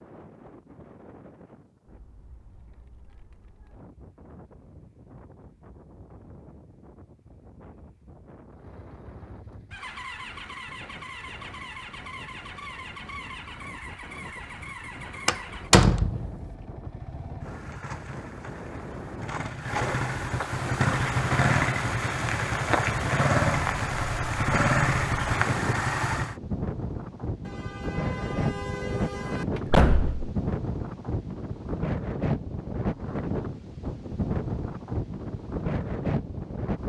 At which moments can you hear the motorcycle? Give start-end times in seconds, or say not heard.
8.6-26.4.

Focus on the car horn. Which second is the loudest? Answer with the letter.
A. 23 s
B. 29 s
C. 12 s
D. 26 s
B.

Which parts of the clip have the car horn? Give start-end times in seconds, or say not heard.
27.4-29.4.